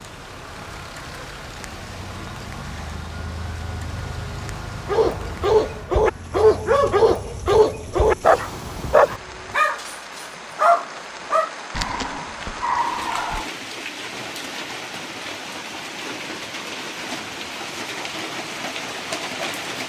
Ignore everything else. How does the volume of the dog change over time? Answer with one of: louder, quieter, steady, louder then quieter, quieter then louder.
quieter.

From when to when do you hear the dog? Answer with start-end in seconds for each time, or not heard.
4.8-13.5.